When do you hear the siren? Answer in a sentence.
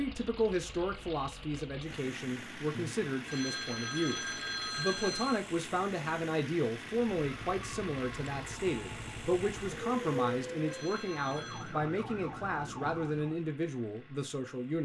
You can hear the siren from 7.0 to 13.5 s.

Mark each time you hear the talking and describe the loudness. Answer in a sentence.
The talking can be heard from 0.0 to 14.8 s, at a steady volume.